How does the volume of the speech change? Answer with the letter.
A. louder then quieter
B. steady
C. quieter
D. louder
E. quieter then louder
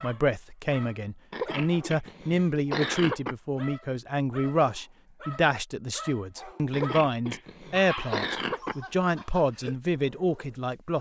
B.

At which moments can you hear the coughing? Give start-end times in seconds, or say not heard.
1.3-3.4, 6.7-8.8.